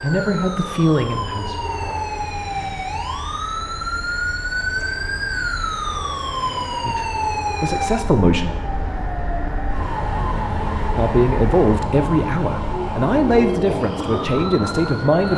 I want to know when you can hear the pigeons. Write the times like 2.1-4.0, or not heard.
not heard.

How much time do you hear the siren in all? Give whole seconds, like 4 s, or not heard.
15 s.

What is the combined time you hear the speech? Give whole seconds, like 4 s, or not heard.
8 s.